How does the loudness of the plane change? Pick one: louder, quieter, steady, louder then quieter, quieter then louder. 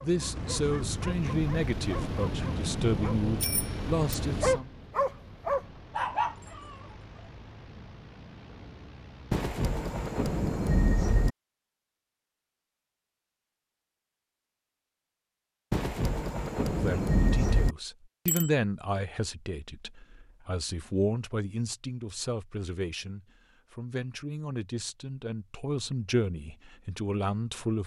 quieter.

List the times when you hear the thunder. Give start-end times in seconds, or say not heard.
9.3-11.3, 15.7-17.8.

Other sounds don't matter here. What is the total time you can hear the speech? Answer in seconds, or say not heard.
16 s.